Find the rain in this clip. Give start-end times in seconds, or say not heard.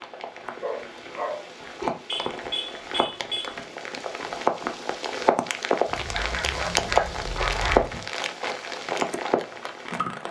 0.0-10.2.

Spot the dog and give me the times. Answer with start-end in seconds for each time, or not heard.
0.6-1.9, 6.0-8.1.